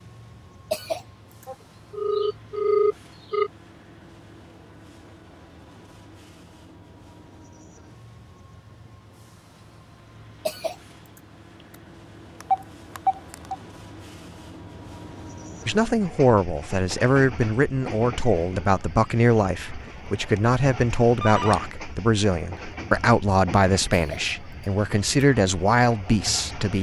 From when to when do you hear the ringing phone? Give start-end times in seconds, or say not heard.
1.4-3.5, 12.4-13.6, 21.2-21.6.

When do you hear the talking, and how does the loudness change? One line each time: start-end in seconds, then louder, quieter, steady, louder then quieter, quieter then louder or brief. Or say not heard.
15.7-26.7 steady.